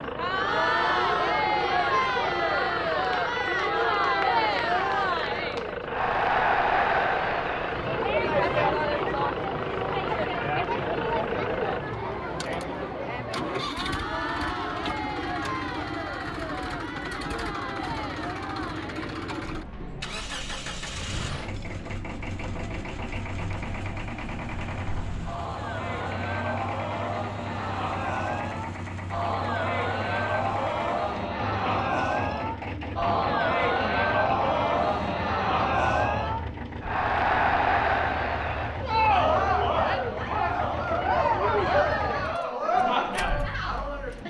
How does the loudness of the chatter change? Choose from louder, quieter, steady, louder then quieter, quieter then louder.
quieter then louder.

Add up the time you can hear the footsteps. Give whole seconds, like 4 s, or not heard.
not heard.